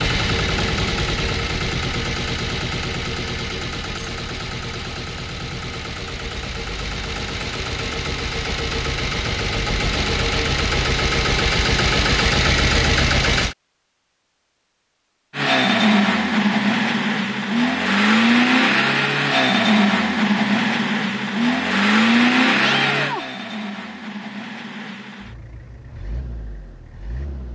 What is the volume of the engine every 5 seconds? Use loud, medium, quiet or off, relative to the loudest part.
medium, medium, loud, loud, loud, quiet.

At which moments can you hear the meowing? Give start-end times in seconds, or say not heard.
22.6-23.2.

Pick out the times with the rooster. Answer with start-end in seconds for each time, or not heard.
not heard.